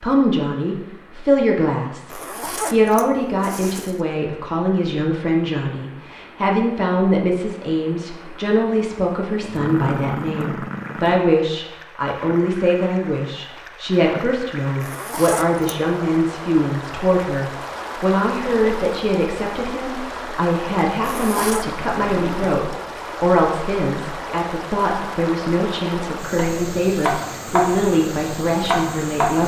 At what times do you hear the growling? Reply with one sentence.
The growling can be heard from 9.4 to 11.2 s and from 21.9 to 22.5 s.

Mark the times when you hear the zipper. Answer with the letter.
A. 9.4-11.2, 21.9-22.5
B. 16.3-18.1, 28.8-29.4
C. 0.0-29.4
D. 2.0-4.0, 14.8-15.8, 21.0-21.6
D.